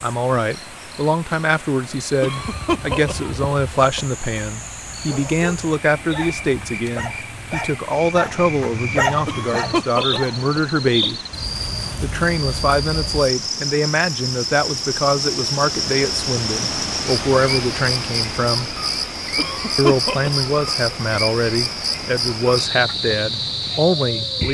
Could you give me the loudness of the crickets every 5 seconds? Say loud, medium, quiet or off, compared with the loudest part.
quiet, medium, loud, loud, loud.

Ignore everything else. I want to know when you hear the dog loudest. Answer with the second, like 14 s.
9 s.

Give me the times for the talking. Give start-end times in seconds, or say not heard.
0.0-11.2, 12.0-18.8, 19.8-24.4.